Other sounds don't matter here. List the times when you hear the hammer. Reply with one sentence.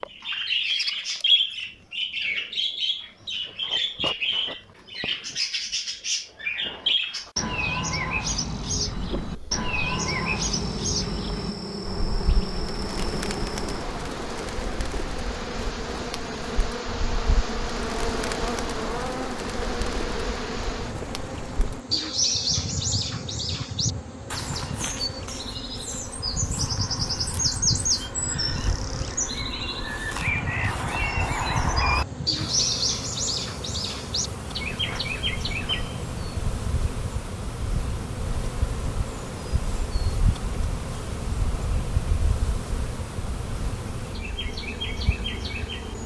You can't hear the hammer here.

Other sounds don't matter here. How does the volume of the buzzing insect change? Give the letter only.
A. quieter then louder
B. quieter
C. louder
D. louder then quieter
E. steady
E.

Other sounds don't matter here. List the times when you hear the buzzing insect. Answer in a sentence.
The buzzing insect can be heard from 8.9 to 46.0 s.